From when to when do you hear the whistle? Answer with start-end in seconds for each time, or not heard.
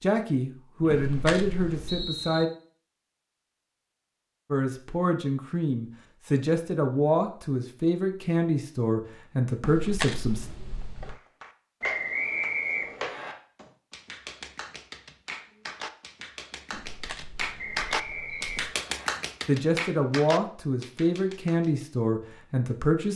0.8-2.5, 11.8-13.3, 17.6-19.1.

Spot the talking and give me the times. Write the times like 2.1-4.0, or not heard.
0.0-2.5, 4.5-10.4, 19.4-23.1.